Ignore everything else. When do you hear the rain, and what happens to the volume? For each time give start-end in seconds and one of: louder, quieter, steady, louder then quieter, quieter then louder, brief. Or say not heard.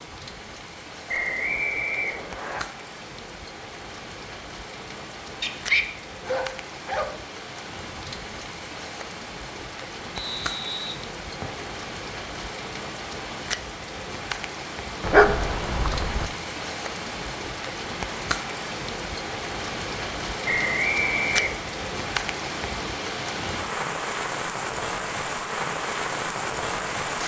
0.0-27.2 louder.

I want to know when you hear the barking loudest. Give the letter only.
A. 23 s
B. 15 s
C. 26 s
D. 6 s
B.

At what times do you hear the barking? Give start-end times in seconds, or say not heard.
5.4-7.2, 15.0-16.3.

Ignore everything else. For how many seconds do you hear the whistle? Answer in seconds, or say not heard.
4 s.